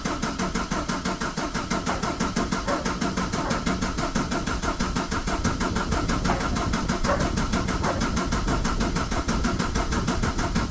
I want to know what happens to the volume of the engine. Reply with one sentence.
The loudness of the engine stays about the same.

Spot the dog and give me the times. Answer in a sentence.
You can hear the dog from 1.9 to 3.6 s and from 6.2 to 8.1 s.